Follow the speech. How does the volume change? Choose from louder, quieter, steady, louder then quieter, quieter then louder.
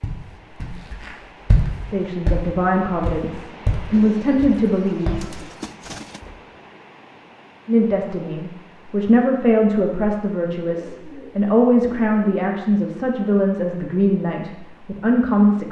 steady.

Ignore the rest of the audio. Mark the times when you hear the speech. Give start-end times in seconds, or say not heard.
1.9-5.3, 7.7-15.6.